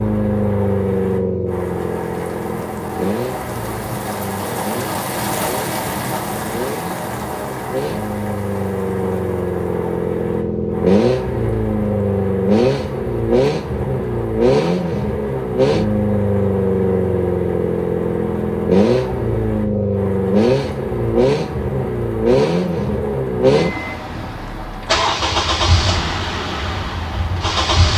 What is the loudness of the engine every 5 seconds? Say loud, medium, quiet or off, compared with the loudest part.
medium, medium, loud, loud, loud, loud.